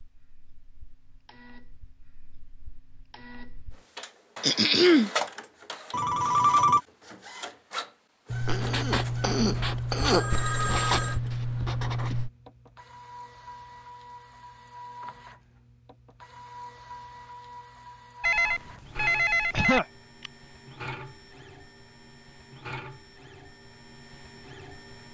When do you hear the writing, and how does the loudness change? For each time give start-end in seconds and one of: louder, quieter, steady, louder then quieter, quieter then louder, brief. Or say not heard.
8.3-12.3 steady.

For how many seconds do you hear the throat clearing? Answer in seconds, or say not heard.
3 s.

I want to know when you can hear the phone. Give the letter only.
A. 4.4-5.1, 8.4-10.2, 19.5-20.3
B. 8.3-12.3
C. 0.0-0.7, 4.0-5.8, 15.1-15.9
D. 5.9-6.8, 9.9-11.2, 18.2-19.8
D.